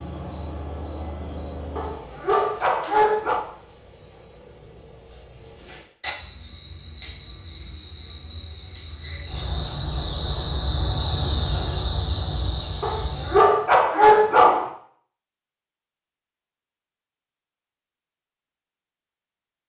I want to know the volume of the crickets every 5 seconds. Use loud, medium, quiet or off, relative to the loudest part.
medium, medium, loud, off.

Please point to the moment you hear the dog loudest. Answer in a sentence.
The loudest moment of the dog is at 14 seconds.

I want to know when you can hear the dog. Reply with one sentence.
You can hear the dog from 1.8 to 3.4 s and from 12.8 to 14.7 s.